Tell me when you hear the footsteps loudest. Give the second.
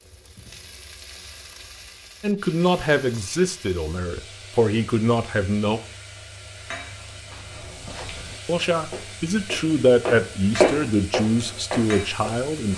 11 s.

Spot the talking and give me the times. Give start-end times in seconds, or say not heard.
2.2-5.8, 8.4-12.7.